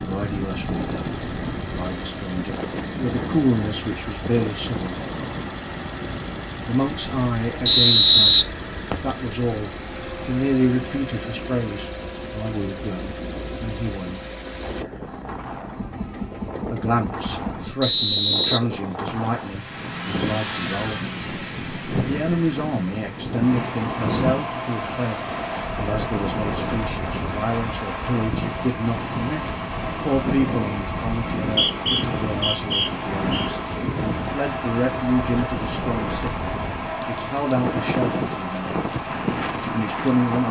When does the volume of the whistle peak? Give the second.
8 s.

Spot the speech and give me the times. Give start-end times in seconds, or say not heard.
0.0-5.0, 6.7-14.3, 16.7-21.1, 22.1-38.7, 39.5-40.4.